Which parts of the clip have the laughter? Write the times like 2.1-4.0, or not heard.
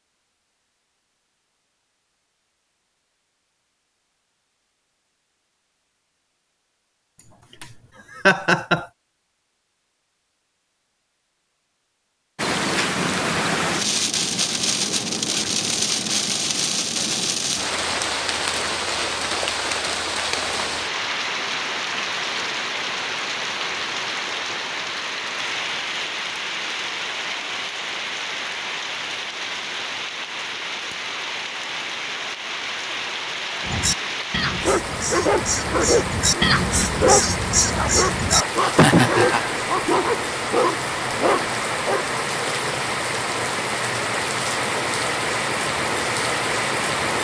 7.2-8.8, 38.5-39.4.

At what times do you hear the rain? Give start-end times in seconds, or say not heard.
12.3-47.1.